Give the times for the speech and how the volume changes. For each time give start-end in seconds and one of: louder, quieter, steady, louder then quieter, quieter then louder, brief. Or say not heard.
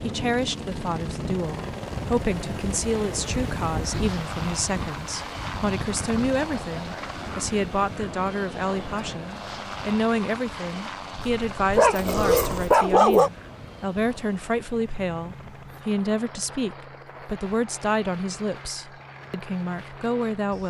0.0-20.6 steady.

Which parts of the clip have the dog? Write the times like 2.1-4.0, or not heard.
11.2-13.3.